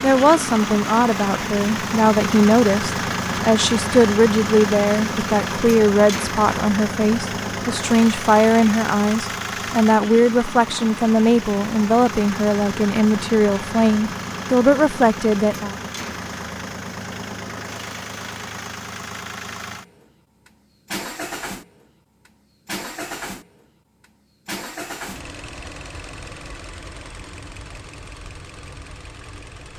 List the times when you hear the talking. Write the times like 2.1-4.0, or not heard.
0.0-15.8.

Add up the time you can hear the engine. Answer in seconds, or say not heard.
30 s.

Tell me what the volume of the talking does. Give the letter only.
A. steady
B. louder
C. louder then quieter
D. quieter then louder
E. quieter
A.